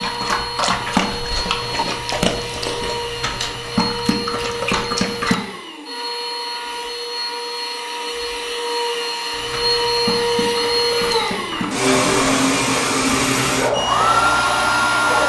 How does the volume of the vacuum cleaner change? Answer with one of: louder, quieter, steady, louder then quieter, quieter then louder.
louder.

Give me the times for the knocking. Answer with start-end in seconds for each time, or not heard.
not heard.